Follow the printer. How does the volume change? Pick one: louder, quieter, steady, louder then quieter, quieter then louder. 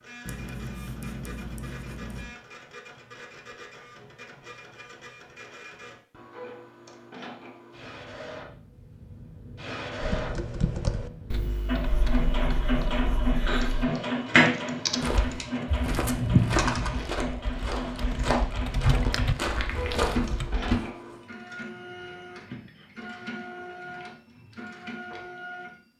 louder then quieter.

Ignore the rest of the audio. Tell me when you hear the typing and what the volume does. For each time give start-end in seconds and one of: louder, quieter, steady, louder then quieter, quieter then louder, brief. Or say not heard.
10.0-20.8 quieter then louder.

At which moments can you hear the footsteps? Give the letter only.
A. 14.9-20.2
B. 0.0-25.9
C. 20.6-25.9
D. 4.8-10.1
A.